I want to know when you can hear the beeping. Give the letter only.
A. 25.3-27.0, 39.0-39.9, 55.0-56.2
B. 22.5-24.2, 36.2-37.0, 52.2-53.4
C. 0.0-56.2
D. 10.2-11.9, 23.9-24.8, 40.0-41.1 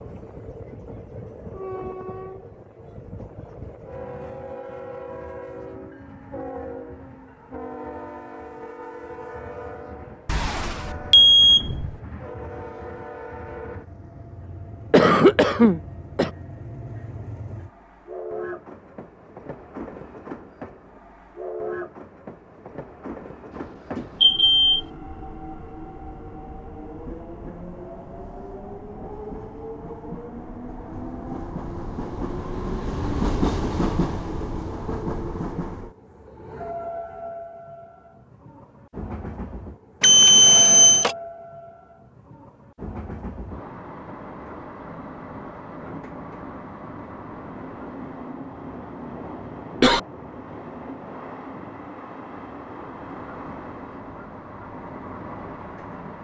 D.